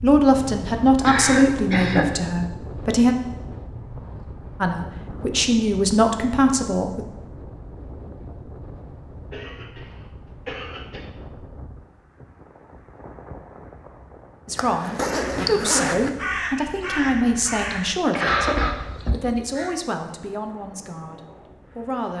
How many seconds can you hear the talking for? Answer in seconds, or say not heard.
13 s.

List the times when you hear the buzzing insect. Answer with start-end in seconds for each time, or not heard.
not heard.